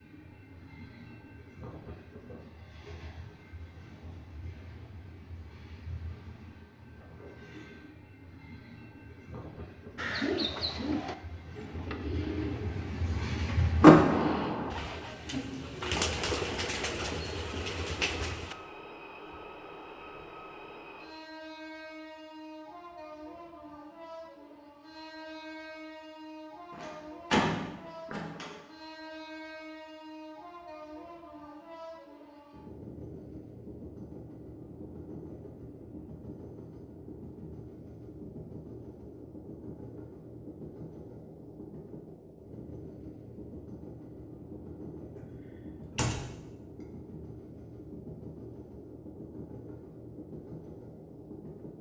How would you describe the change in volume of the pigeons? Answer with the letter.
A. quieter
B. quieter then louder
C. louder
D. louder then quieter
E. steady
B.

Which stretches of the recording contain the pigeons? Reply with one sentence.
The pigeons can be heard from 9.9 to 18.6 s.